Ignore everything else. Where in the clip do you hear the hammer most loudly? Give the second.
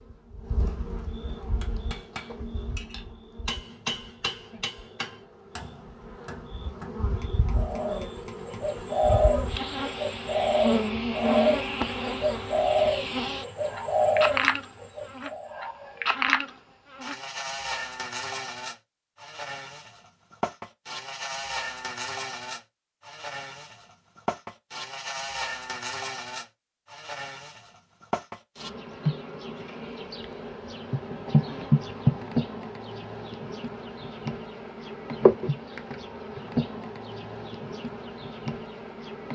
4 s.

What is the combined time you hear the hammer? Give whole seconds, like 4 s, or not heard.
7 s.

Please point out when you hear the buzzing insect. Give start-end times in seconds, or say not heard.
0.0-39.3.